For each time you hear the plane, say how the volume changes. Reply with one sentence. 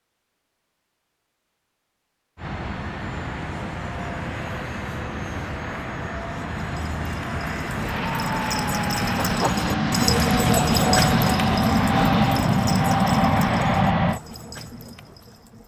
The plane can be heard from 2.4 to 14.2 s, getting louder.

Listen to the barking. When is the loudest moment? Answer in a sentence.
The loudest moment of the barking is at 11 seconds.